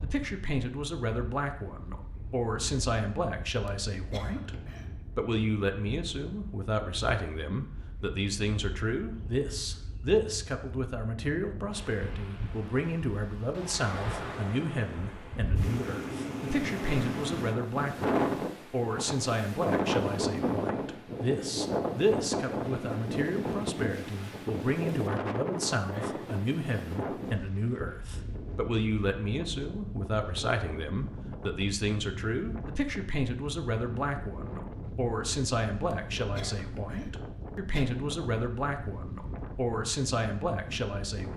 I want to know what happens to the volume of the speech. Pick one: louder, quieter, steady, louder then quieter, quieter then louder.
steady.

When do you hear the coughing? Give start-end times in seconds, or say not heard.
3.6-5.0, 35.9-37.9.